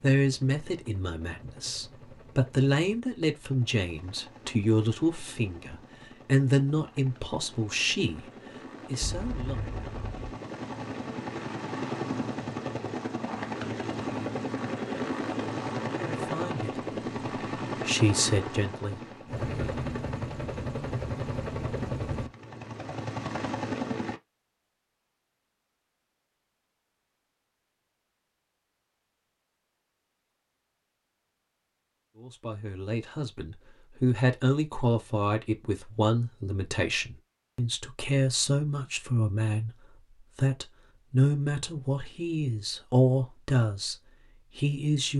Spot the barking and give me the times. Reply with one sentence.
You can't hear the barking here.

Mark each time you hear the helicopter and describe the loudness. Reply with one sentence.
You can hear the helicopter from 0.1 to 24.2 s, getting louder.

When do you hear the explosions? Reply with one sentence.
You can hear the explosions from 9.0 to 10.3 s.